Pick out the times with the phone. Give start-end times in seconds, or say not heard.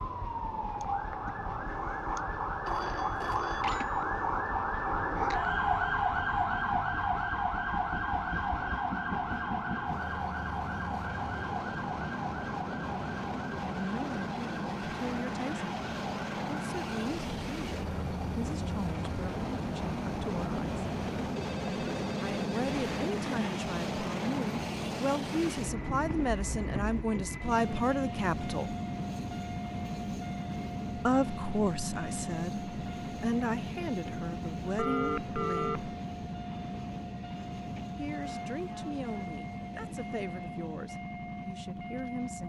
2.6-4.2, 21.4-23.1, 34.8-35.9.